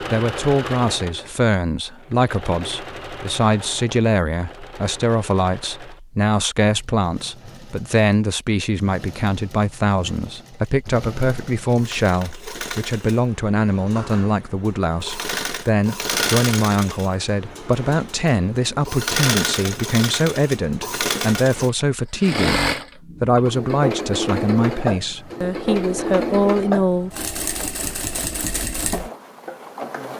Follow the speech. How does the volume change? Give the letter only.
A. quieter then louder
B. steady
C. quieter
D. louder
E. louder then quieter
B.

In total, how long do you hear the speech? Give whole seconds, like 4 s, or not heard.
27 s.